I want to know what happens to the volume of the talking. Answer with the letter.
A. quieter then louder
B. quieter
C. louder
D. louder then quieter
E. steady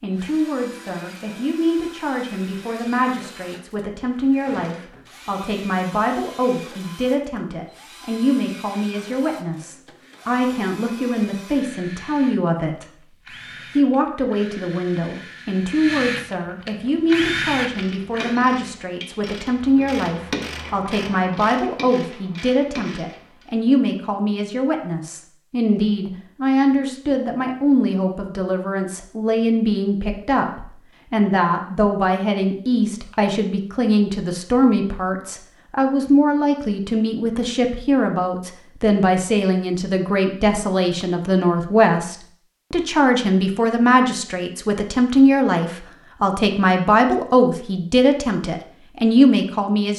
C.